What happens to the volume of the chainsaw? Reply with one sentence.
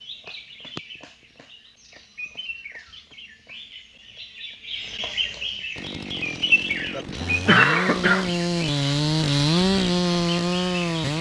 The loudness of the chainsaw goes up.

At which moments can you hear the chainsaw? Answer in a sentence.
The chainsaw can be heard from 5.8 to 11.1 s.